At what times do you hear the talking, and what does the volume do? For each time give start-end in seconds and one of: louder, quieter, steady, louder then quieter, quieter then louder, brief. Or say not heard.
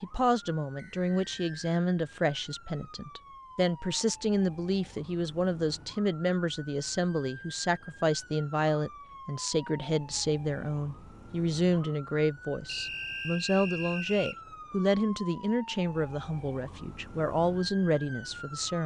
0.0-18.8 steady.